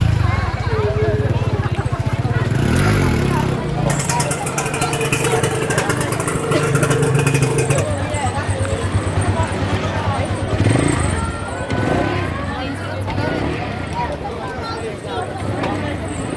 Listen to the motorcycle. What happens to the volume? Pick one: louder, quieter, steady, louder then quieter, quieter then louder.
quieter.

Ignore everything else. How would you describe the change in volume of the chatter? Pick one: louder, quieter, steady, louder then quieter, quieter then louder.
steady.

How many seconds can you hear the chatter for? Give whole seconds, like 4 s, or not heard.
16 s.